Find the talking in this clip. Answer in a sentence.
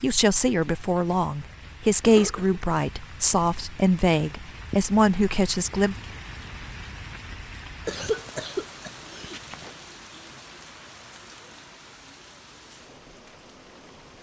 You can hear the talking from 0.0 to 6.0 s.